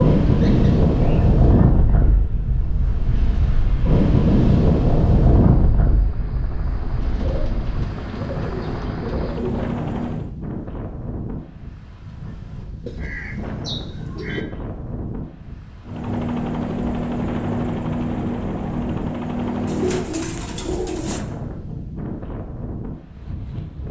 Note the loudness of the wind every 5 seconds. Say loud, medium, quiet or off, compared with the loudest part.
loud, medium, quiet, quiet, quiet.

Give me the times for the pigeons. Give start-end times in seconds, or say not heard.
0.2-2.2, 7.0-9.7, 12.8-14.4, 19.6-21.2.